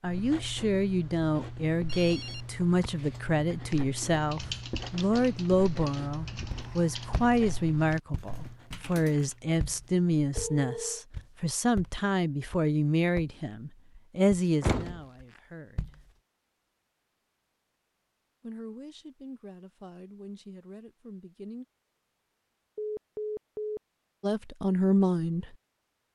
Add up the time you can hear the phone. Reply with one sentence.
The phone can be heard for 3 seconds in total.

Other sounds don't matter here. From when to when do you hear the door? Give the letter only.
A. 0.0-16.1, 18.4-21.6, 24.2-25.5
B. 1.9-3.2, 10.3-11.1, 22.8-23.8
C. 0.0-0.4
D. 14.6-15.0
D.